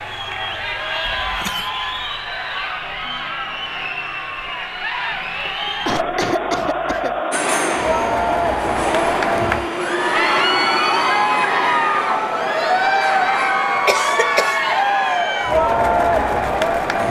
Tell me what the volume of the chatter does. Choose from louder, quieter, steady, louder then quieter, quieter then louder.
louder.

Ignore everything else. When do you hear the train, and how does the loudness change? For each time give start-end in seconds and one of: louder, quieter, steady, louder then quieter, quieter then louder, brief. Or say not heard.
7.3-17.0 quieter.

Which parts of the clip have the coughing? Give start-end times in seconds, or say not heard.
1.1-1.7, 5.8-7.2, 13.8-14.6.